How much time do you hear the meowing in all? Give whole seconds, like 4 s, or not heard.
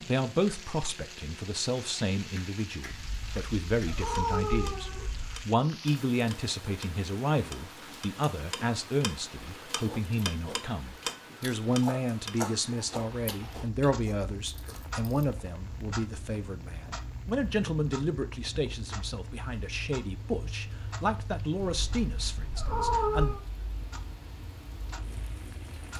4 s.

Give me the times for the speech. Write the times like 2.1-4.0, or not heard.
0.0-23.4.